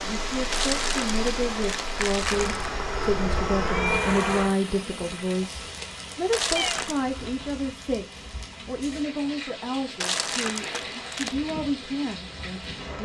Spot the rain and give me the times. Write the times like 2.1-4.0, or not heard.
0.0-13.0.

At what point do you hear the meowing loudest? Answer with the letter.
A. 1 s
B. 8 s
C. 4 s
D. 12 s
C.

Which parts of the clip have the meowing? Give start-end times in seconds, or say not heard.
2.3-4.6, 6.5-7.3.